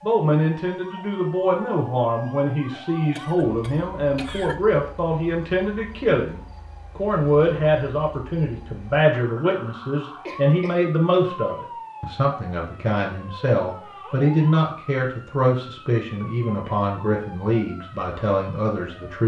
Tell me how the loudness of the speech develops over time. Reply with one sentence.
The loudness of the speech stays about the same.